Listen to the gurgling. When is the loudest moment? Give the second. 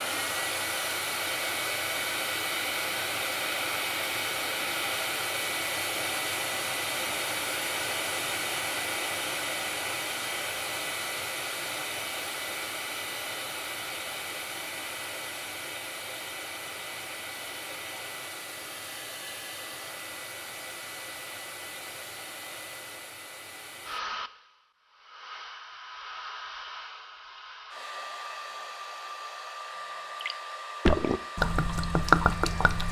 32 s.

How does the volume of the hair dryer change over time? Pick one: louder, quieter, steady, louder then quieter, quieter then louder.
quieter.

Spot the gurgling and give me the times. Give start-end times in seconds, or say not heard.
30.2-32.8.